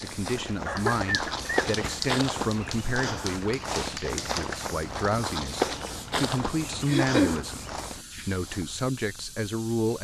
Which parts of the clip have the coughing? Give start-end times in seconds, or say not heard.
0.7-2.1, 6.8-7.5.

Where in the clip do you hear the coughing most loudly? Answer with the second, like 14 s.
7 s.